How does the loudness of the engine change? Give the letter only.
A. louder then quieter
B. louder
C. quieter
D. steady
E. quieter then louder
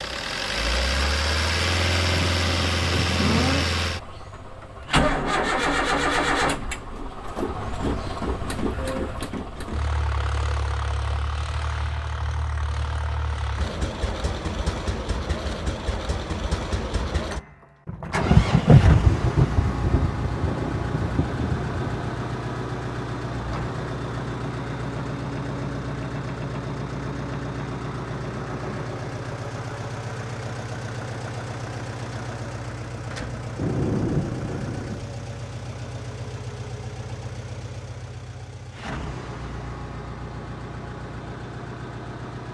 C.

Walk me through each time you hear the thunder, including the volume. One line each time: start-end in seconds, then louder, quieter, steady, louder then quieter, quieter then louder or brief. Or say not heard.
2.1-3.6 brief
17.9-22.1 quieter
33.5-35.0 brief.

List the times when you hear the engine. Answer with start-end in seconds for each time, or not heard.
0.0-42.4.